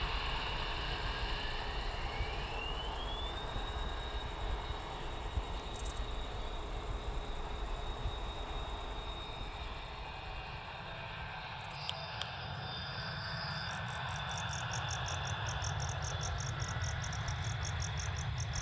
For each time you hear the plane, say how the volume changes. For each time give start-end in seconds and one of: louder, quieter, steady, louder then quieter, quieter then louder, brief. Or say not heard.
0.0-18.5 quieter then louder.